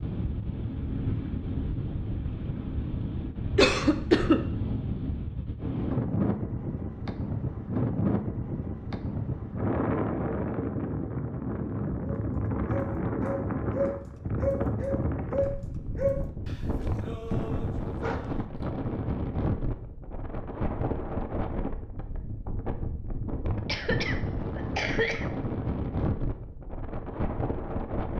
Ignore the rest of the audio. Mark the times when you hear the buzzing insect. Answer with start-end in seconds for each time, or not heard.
not heard.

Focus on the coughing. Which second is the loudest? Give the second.
4 s.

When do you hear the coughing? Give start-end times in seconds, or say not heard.
3.5-4.4, 23.6-25.2.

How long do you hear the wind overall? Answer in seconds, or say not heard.
28 s.